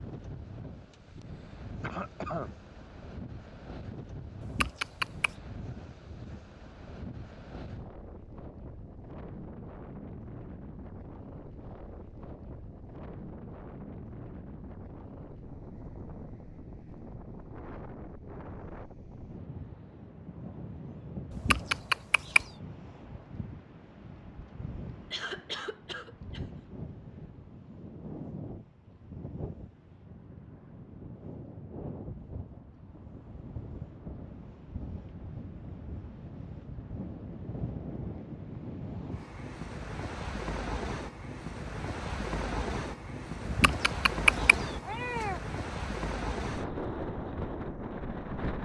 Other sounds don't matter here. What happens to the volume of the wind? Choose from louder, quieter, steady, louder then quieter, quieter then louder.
louder.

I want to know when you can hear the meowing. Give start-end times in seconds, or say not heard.
4.4-5.3, 21.3-22.5, 43.5-45.4.